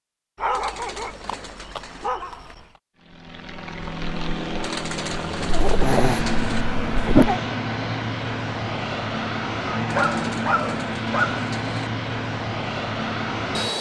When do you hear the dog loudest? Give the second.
7 s.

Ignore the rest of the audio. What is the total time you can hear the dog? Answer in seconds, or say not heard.
6 s.